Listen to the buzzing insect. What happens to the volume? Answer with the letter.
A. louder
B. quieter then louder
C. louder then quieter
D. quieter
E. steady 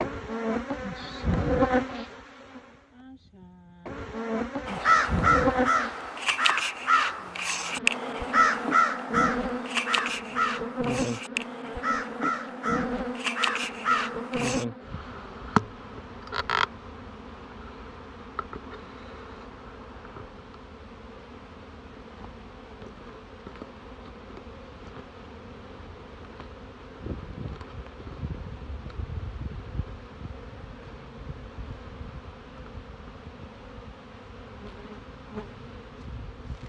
D.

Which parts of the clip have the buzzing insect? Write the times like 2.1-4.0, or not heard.
0.0-36.6.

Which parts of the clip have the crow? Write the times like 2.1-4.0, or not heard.
4.7-14.7.